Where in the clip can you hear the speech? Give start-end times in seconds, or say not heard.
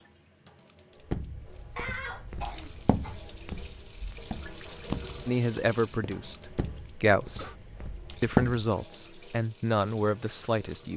5.2-7.5, 8.2-10.9.